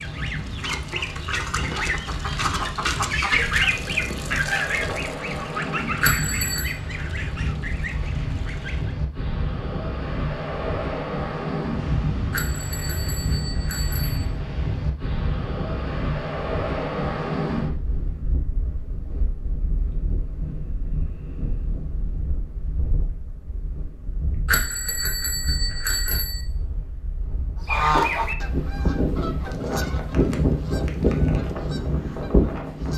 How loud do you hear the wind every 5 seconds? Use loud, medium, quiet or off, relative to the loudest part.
medium, loud, loud, loud, medium, medium, loud.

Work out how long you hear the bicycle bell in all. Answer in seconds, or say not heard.
5 s.